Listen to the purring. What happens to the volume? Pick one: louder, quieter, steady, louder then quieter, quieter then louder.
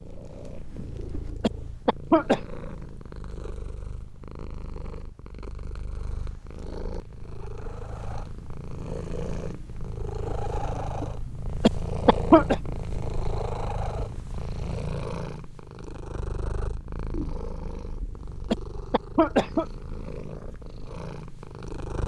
louder then quieter.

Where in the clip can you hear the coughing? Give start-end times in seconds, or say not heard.
1.4-2.4, 11.6-12.6, 18.5-19.6.